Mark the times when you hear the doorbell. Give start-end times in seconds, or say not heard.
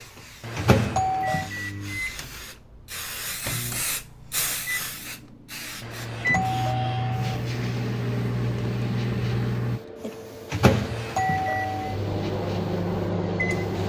0.4-1.5, 5.8-7.2, 10.7-12.0.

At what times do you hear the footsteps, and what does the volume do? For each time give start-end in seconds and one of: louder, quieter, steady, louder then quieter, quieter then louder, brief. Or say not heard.
not heard.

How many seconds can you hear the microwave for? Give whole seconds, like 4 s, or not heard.
14 s.